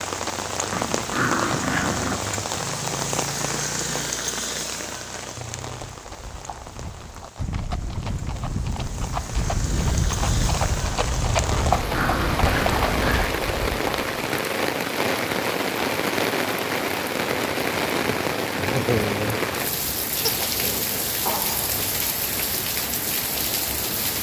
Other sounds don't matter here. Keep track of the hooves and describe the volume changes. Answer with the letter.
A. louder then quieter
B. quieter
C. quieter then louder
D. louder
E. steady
D.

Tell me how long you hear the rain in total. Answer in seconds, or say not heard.
24 s.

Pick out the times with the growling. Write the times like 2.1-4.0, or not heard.
0.7-2.2, 11.5-13.4, 20.2-21.8.